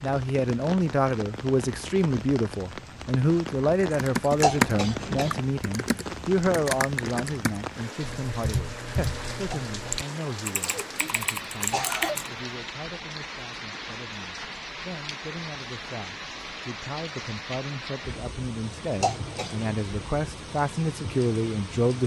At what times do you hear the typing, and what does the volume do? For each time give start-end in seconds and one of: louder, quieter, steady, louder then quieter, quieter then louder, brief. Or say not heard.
3.9-12.3 quieter.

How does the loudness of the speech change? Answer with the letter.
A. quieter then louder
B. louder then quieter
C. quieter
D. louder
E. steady
A.